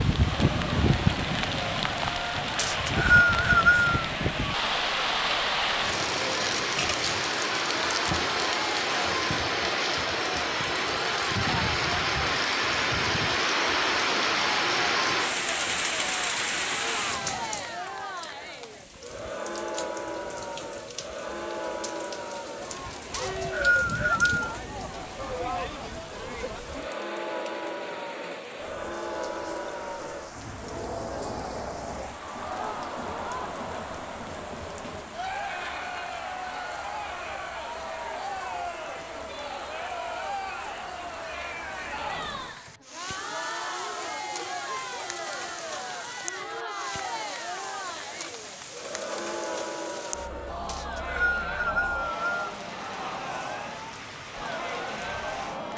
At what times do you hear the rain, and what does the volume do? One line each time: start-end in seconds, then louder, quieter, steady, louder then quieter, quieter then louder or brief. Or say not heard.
0.0-55.7 quieter.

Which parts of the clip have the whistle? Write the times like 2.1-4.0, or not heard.
2.5-4.0, 23.1-24.5, 50.6-52.4.